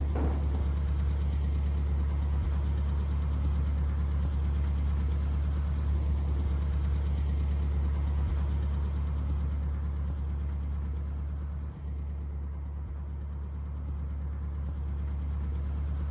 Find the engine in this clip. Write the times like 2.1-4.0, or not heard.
0.0-16.0.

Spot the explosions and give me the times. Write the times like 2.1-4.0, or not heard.
0.1-0.7.